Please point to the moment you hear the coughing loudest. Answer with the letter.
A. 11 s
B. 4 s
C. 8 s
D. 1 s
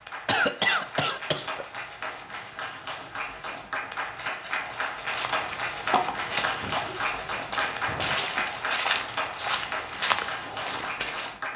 D.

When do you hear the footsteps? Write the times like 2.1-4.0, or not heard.
5.0-11.3.